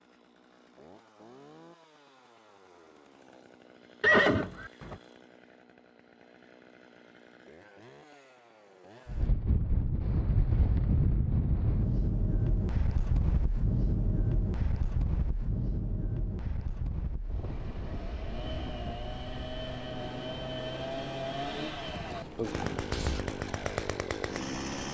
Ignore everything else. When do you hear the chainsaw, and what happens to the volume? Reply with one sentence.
The chainsaw can be heard from 0.0 to 9.3 s, at a steady volume; and from 17.3 to 24.8 s, getting louder.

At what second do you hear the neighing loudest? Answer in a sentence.
The volume of the neighing peaks at 4 seconds.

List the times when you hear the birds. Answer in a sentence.
You can't hear the birds here.